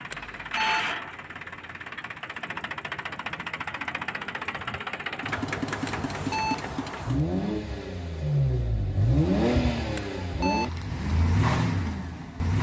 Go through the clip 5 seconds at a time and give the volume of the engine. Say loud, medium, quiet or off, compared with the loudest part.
medium, loud, loud.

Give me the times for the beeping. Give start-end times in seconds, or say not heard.
0.1-0.9, 5.8-6.7, 9.9-10.8.